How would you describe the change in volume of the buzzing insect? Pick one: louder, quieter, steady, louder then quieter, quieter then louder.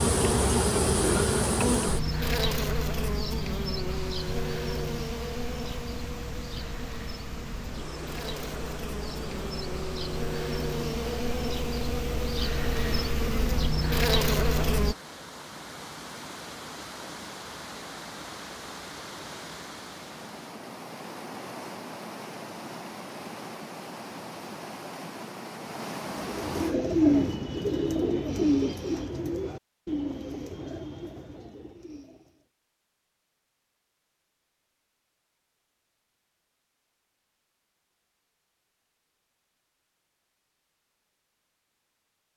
quieter then louder.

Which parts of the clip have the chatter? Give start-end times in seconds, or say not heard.
not heard.